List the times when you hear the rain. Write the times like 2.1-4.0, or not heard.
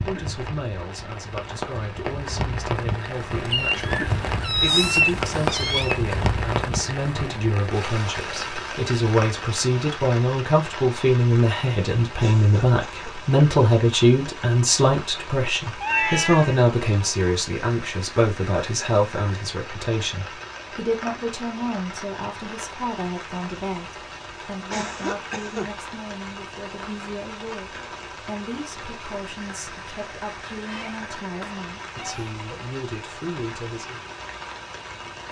0.0-35.2.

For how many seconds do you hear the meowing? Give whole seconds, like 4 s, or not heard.
5 s.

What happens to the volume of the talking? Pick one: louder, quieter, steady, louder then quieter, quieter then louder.
louder then quieter.